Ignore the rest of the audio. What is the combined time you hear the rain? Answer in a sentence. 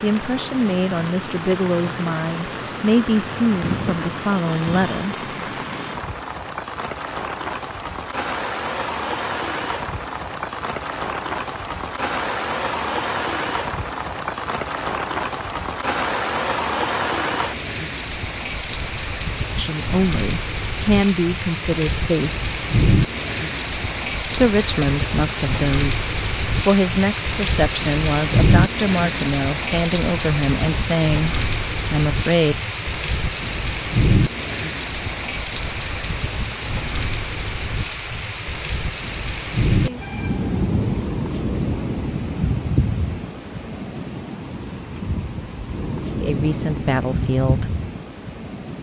You can hear the rain for 49 seconds altogether.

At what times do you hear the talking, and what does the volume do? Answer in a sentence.
You can hear the talking from 0.0 to 5.2 s, at a steady volume; briefly from 19.6 to 22.3 s; from 24.3 to 32.5 s, at a steady volume; and briefly from 46.2 to 47.8 s.